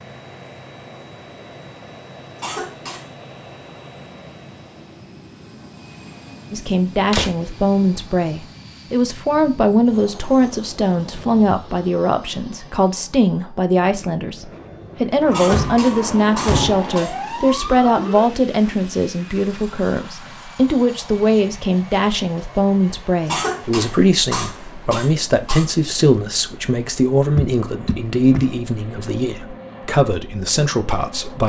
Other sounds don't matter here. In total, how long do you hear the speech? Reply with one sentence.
You can hear the speech for 25 seconds altogether.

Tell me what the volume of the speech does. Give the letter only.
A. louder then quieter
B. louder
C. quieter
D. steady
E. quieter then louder
D.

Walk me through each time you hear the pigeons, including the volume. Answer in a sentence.
You can't hear the pigeons here.